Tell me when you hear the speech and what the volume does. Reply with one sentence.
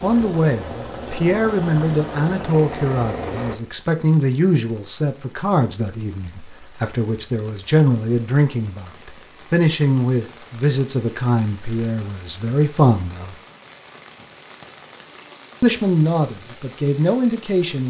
The speech can be heard from 0.0 to 13.3 s, at a steady volume; and briefly from 15.6 to 17.8 s.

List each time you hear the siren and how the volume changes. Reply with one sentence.
The siren can't be heard in this clip.